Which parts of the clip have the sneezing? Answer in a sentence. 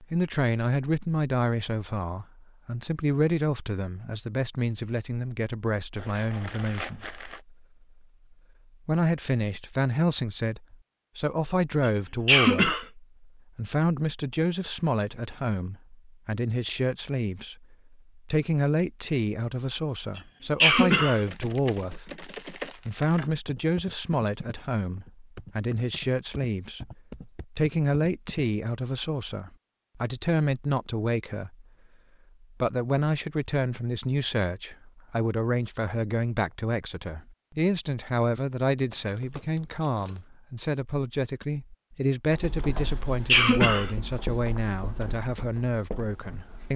You can hear the sneezing from 11.8 to 12.8 s, from 20.1 to 21.2 s and from 42.9 to 43.9 s.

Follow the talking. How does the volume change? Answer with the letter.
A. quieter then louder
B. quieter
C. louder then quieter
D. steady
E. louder
D.